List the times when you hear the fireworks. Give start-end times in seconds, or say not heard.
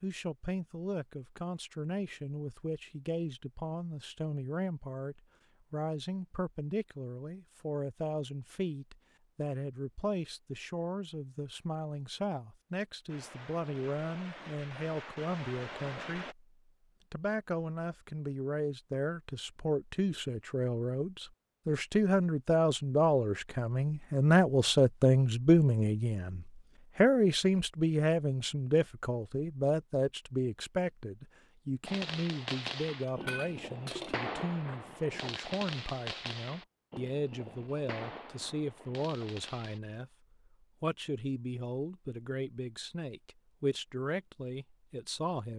13.1-16.4, 31.9-39.8.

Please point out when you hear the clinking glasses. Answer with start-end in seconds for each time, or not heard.
33.0-34.2.